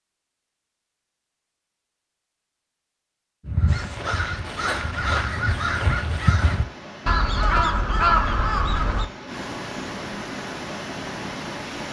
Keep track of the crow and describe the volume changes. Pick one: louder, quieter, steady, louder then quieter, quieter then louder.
louder.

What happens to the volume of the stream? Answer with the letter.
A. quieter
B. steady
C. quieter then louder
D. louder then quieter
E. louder
E.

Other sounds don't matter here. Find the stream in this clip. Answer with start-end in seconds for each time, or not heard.
3.6-11.8.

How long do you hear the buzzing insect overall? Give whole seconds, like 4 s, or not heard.
not heard.